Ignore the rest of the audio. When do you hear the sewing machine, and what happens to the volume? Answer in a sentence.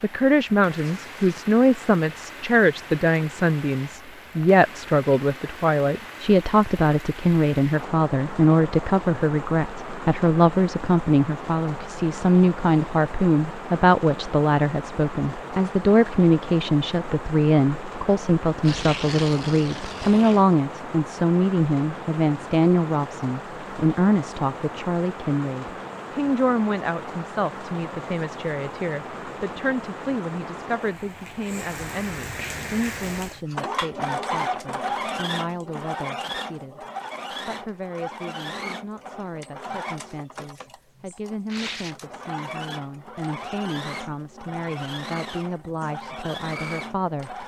You can hear the sewing machine from 32.4 to 47.4 s, getting quieter.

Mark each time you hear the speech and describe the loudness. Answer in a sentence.
You can hear the speech from 0.0 to 47.4 s, getting quieter.